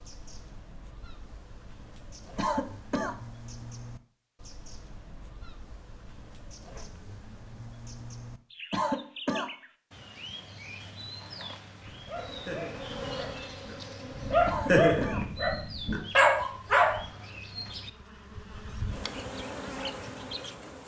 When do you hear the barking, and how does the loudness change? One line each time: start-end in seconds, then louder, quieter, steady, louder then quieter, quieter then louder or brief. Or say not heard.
11.0-17.0 louder.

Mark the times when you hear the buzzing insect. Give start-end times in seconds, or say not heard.
12.2-14.6, 16.5-20.8.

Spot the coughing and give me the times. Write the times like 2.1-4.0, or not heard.
2.4-3.1, 8.7-9.5, 14.4-15.2.